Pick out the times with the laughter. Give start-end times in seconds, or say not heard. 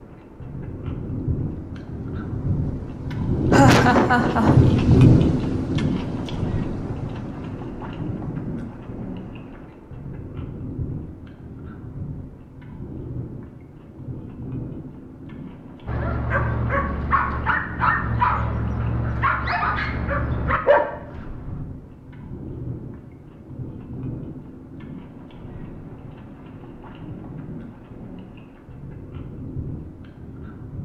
3.5-4.8.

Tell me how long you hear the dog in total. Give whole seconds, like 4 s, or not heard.
6 s.